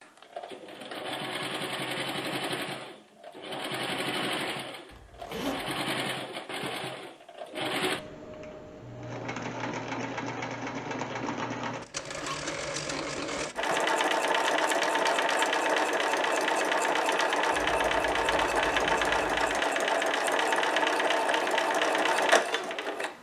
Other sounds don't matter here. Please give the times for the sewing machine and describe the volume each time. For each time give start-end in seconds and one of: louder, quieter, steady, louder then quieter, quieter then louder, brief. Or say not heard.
0.0-23.1 louder.